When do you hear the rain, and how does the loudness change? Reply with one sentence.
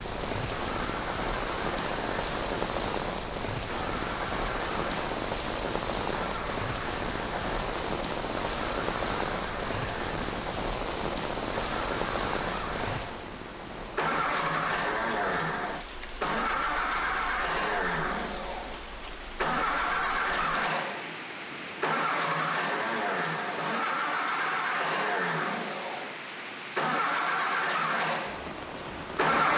The rain can be heard from 0.0 to 29.4 s, getting quieter.